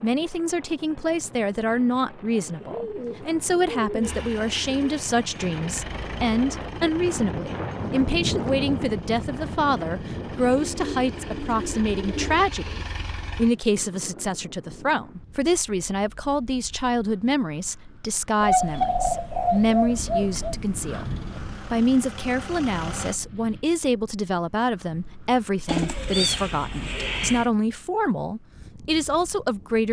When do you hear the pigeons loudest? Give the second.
19 s.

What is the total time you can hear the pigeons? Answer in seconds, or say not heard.
9 s.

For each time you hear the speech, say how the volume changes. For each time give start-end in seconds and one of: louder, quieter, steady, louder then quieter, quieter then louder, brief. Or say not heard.
0.0-29.8 steady.